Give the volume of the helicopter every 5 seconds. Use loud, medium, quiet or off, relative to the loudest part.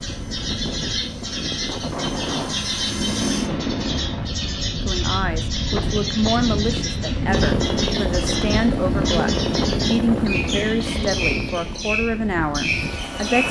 medium, loud, medium.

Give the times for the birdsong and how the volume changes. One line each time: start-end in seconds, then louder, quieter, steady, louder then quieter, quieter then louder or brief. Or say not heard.
0.0-13.4 steady.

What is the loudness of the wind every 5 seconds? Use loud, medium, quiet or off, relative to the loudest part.
loud, loud, medium.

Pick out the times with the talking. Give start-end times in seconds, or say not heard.
4.8-13.4.